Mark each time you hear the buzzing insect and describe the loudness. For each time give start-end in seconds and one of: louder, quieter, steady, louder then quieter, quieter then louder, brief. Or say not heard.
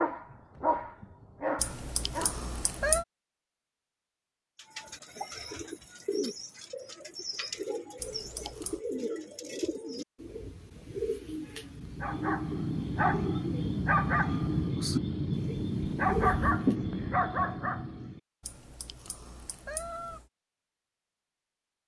not heard.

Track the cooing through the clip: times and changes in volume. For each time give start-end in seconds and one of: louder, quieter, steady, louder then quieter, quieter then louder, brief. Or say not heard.
4.5-16.8 steady.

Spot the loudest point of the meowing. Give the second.
3 s.